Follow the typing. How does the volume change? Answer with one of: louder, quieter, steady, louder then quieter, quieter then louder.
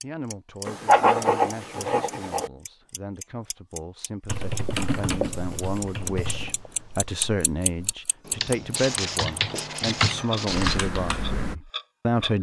quieter then louder.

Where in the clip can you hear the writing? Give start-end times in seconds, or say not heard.
0.7-2.5, 4.5-6.7, 8.8-10.8.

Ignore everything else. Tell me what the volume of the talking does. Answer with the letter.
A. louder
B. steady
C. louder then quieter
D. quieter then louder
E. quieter
A.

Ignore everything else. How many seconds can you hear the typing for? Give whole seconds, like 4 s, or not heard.
7 s.